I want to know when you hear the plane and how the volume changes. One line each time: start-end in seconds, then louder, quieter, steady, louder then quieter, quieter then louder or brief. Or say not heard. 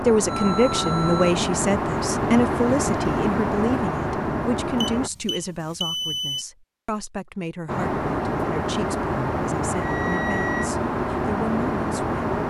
0.0-5.1 steady
7.7-12.4 steady.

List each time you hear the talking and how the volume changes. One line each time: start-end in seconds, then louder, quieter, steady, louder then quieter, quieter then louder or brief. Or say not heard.
0.0-12.2 quieter.